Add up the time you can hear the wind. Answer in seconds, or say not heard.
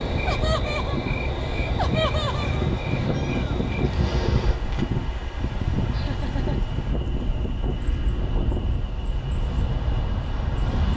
11 s.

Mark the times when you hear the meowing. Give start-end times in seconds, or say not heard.
2.9-4.9.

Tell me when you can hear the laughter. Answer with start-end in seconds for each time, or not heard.
0.2-2.7, 5.9-7.1.